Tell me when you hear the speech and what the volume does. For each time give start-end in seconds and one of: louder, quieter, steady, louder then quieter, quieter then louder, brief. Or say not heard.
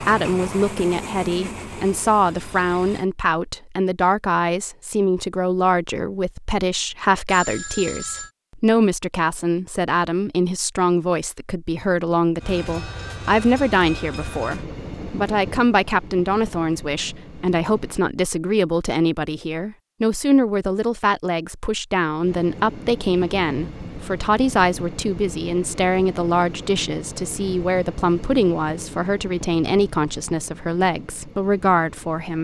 0.0-32.4 steady.